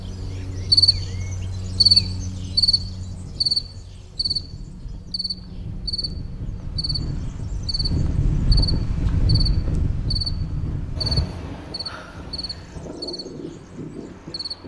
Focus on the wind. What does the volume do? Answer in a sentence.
The loudness of the wind goes up, then down.